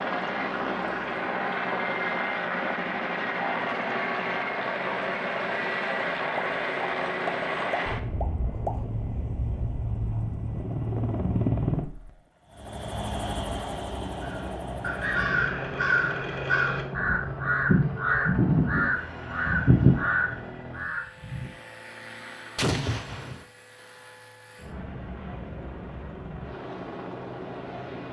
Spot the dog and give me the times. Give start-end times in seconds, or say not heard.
not heard.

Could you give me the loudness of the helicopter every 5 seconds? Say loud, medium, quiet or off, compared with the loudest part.
loud, loud, loud, medium, quiet, medium.